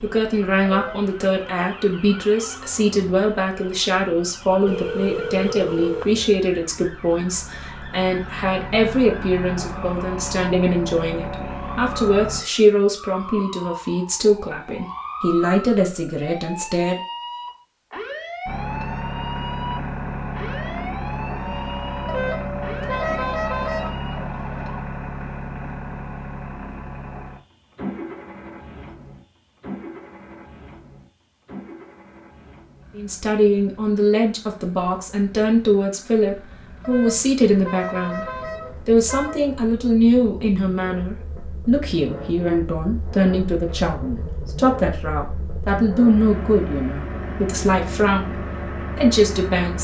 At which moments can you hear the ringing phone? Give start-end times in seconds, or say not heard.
4.7-6.2.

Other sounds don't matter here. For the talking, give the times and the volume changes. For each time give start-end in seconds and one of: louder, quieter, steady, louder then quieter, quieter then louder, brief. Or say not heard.
0.0-17.0 steady
33.0-38.2 quieter then louder
38.9-49.7 steady.